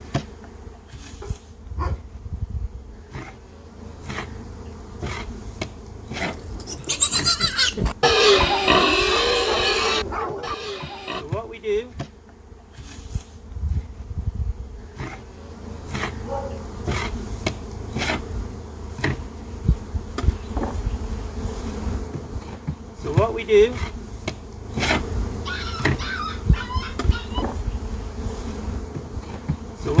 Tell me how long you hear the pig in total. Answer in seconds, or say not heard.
5 s.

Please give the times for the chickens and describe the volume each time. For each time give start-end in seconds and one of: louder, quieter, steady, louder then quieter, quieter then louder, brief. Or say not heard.
not heard.